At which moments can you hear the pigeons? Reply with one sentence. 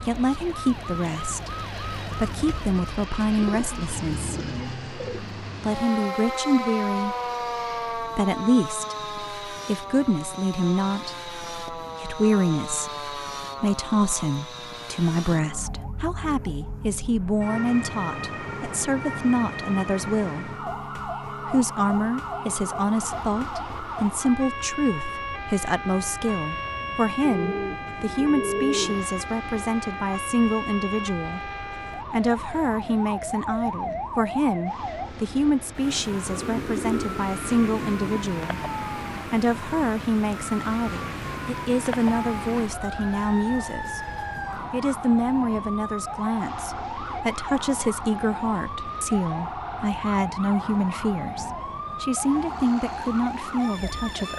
You can hear the pigeons from 3.4 to 5.2 s, from 27.2 to 29.0 s and from 36.2 to 38.2 s.